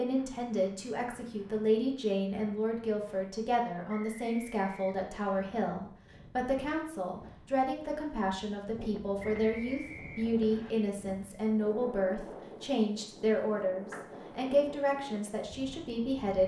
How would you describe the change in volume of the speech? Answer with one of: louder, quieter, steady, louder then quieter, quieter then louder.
steady.